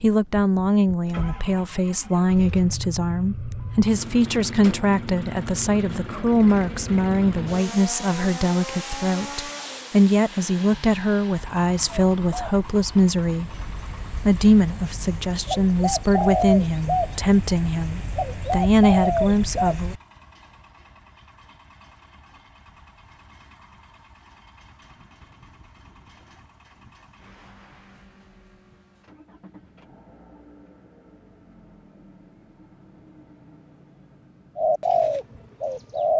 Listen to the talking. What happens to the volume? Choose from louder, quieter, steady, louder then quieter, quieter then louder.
steady.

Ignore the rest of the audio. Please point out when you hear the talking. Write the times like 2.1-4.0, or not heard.
0.0-13.5, 14.2-19.9.